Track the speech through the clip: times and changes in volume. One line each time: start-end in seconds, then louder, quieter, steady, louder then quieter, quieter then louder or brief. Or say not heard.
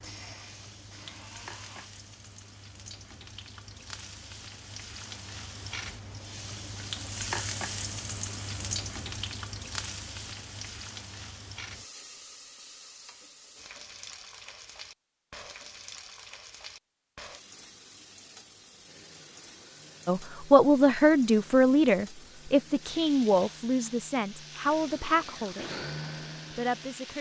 20.1-25.8 quieter
26.5-27.1 brief.